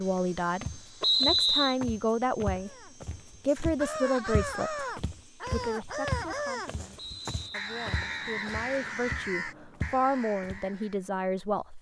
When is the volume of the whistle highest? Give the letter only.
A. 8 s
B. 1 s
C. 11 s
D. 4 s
B.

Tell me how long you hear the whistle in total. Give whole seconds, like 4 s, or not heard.
3 s.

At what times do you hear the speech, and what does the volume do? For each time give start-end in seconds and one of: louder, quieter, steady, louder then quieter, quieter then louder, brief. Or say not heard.
0.0-2.8 brief
3.4-11.7 quieter then louder.